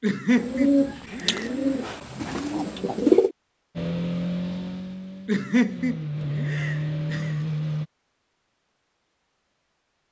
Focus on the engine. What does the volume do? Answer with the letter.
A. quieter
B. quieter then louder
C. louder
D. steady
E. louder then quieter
B.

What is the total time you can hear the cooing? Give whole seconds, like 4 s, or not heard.
3 s.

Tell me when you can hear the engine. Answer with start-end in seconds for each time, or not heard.
3.8-7.8.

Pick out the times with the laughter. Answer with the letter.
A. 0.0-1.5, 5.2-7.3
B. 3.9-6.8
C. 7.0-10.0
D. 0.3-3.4
A.